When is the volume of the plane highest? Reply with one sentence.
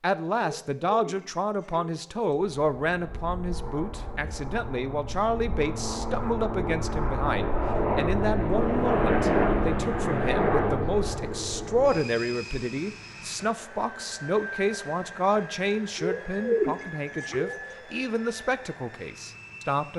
The loudest moment of the plane is at 9 seconds.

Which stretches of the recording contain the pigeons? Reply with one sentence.
You can hear the pigeons from 0.4 to 2.3 s and from 15.9 to 17.8 s.